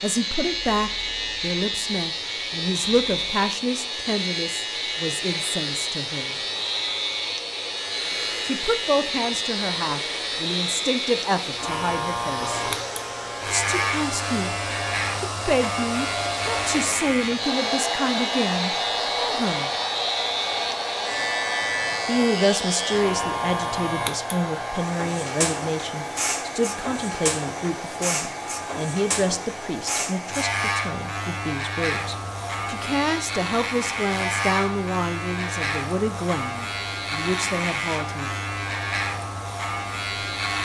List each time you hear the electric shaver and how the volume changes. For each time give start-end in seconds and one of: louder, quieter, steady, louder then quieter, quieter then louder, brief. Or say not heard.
0.0-40.6 steady.